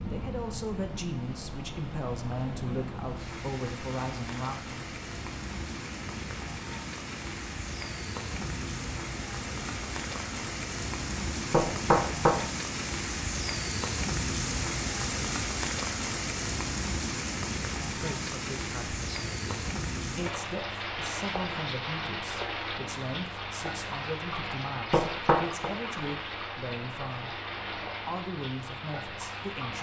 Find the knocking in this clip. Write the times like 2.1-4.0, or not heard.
11.5-12.4, 24.9-25.7.